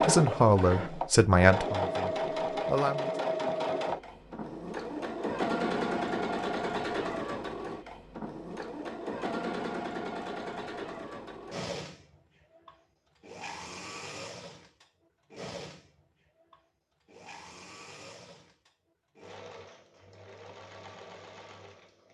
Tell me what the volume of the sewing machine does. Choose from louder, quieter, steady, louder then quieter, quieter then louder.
quieter.